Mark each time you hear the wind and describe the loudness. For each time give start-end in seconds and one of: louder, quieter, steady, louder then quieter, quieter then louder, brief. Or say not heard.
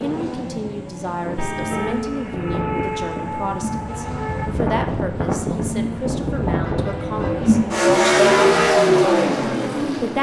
0.0-7.7 louder.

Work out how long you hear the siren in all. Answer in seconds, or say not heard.
3 s.